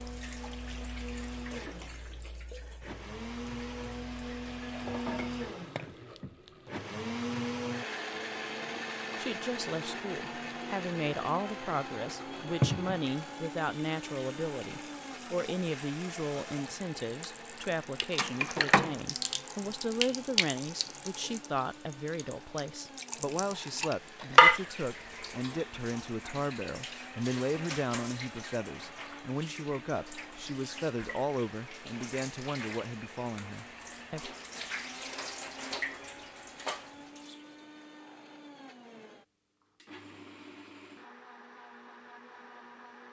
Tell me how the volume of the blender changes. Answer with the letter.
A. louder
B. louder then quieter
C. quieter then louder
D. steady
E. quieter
E.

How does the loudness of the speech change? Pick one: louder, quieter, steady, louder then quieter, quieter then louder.
steady.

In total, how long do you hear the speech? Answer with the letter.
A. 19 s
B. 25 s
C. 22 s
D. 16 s
B.